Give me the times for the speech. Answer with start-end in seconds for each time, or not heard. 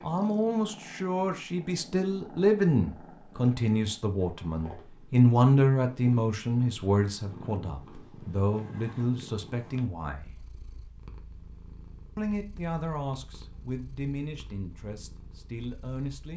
0.0-10.3, 12.2-16.3.